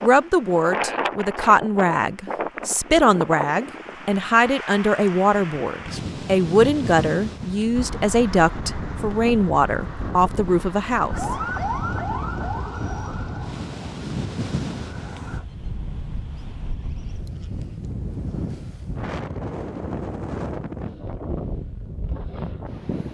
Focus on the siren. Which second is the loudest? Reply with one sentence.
The loudest moment of the siren is at 12 seconds.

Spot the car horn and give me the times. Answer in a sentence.
You can't hear the car horn here.